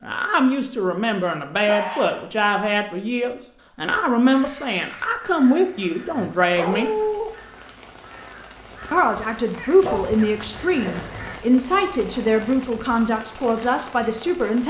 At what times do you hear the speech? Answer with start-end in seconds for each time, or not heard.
0.0-6.9, 8.9-14.6.